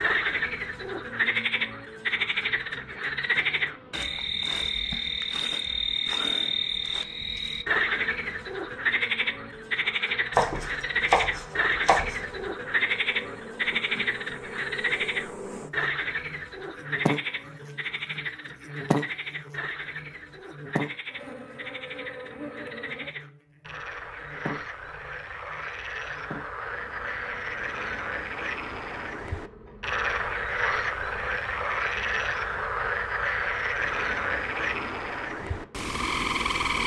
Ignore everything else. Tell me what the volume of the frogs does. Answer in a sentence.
The loudness of the frogs goes down, then up.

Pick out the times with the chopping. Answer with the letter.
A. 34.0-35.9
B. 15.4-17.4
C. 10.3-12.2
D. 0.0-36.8
C.